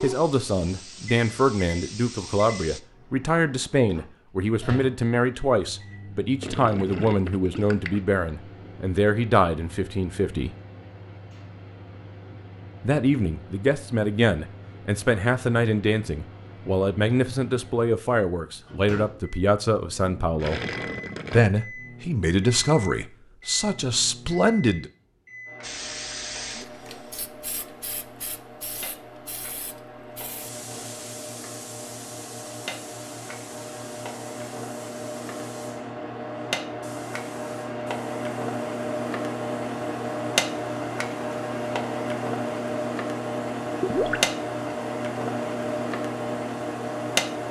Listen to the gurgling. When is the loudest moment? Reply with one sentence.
The loudest moment of the gurgling is at 44 seconds.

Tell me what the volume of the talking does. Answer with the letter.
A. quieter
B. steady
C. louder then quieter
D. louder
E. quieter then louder
B.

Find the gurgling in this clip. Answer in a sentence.
The gurgling can be heard from 6.4 to 8.0 s, from 20.4 to 21.5 s and from 43.8 to 44.2 s.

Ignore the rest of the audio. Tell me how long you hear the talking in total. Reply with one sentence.
You can hear the talking for 22 seconds altogether.